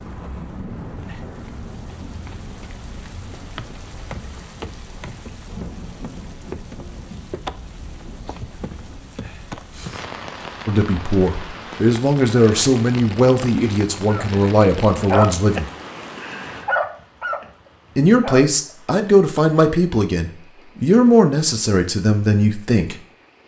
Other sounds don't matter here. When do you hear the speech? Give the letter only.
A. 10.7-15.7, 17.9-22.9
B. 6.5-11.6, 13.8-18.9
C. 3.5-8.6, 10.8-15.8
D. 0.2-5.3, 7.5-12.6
A.